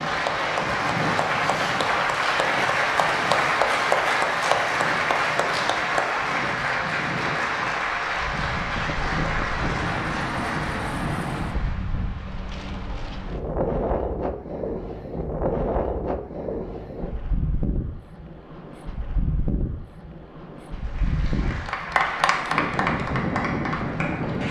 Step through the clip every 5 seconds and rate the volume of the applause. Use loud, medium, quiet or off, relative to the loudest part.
loud, loud, medium, off, medium.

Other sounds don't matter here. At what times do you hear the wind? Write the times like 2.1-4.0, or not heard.
0.0-24.4.